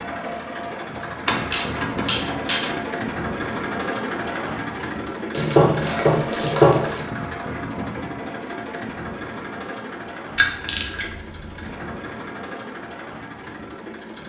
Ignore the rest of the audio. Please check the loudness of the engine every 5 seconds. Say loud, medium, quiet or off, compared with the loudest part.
loud, loud, medium.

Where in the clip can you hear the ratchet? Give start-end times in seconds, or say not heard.
1.2-2.8, 5.3-7.0, 10.3-11.7.